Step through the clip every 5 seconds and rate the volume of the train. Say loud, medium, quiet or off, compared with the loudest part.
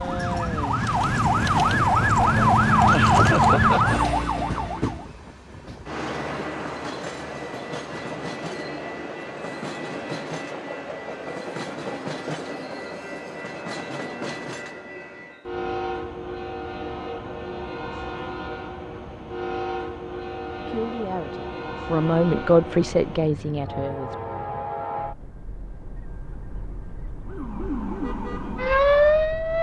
loud, loud, loud, loud, loud, medium.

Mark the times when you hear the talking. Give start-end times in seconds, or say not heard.
20.6-24.1.